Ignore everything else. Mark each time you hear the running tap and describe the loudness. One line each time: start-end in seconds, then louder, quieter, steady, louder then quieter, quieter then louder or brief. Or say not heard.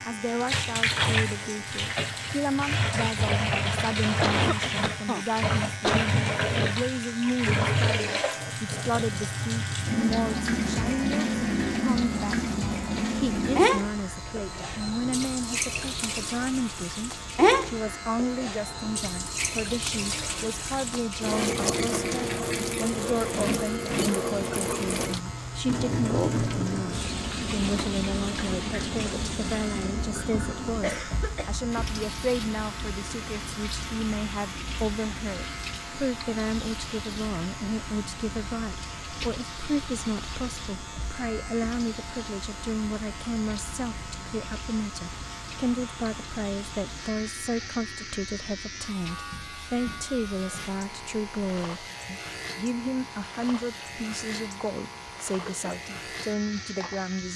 0.0-57.1 quieter.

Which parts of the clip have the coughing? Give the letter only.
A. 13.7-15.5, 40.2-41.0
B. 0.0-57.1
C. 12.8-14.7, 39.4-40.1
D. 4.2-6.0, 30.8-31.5
D.